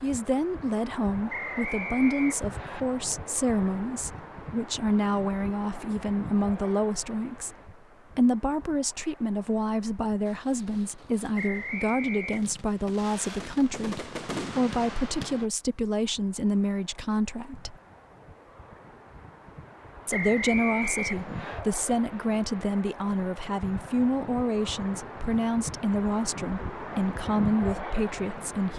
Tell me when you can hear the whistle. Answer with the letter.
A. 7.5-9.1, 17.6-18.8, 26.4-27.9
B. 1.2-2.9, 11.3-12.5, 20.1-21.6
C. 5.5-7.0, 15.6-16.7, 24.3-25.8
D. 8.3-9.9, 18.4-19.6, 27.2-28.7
B.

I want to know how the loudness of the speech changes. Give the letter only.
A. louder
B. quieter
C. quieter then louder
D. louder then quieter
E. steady
E.